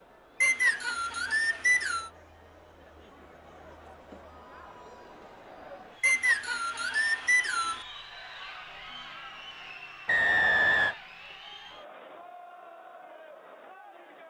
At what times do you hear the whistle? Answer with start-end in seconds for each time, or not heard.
0.4-2.1, 6.0-7.8, 10.1-10.9.